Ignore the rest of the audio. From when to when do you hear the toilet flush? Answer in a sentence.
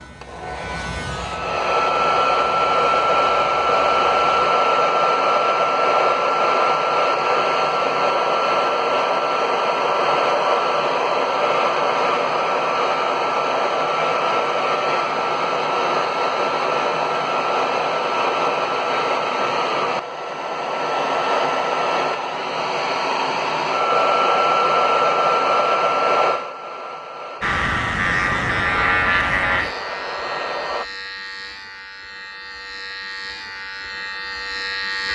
The toilet flush can't be heard in this clip.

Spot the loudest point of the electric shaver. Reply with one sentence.
The loudest moment of the electric shaver is at 29 seconds.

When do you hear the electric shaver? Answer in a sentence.
You can hear the electric shaver from 0.0 to 4.2 s and from 27.4 to 35.1 s.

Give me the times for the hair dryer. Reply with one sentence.
The hair dryer can be heard from 0.2 to 30.9 s.